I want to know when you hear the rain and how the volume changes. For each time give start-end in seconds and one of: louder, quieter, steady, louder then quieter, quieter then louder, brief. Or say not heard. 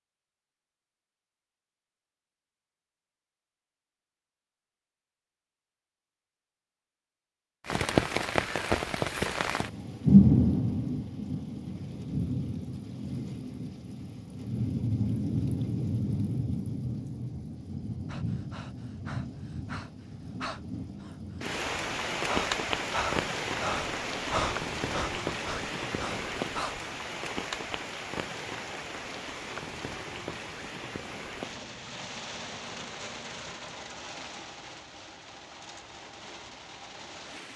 7.7-37.5 quieter.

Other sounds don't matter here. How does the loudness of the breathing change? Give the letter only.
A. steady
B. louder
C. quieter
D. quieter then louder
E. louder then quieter
E.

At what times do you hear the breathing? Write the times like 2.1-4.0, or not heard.
18.1-26.9.